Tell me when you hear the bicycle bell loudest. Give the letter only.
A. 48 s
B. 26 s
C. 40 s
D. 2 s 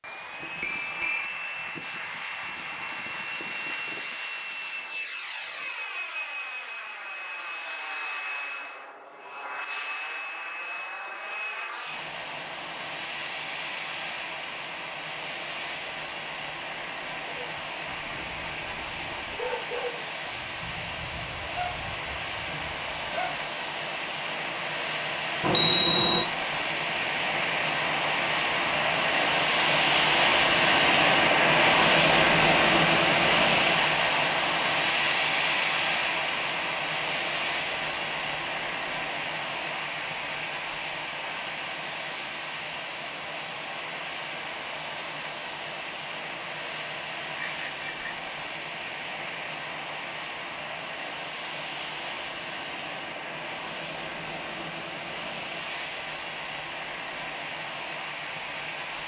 B.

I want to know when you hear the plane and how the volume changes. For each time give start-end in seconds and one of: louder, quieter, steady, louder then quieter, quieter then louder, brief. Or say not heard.
0.0-59.0 louder then quieter.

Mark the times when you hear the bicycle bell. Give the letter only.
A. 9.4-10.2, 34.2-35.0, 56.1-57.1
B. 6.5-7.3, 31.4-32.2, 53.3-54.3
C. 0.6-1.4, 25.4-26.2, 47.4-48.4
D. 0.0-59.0
C.